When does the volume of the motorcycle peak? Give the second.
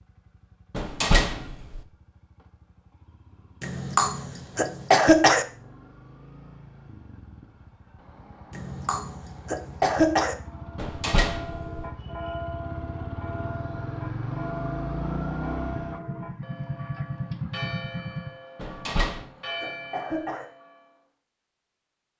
15 s.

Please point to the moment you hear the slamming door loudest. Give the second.
1 s.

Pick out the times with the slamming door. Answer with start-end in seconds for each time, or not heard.
0.7-1.8, 10.8-11.8, 18.6-19.3.